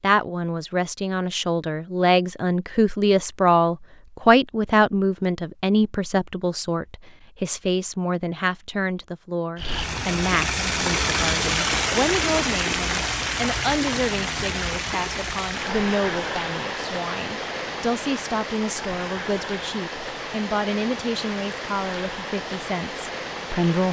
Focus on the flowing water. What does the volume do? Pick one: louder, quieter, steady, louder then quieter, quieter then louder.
quieter.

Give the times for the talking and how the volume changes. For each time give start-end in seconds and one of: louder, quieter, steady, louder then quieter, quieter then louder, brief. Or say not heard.
0.0-23.8 quieter.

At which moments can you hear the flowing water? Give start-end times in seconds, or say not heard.
9.6-23.8.